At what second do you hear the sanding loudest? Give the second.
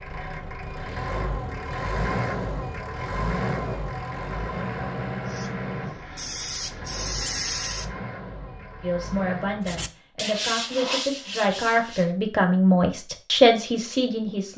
11 s.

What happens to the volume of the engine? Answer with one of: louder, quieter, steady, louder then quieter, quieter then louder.
quieter.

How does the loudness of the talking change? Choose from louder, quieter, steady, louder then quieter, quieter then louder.
louder.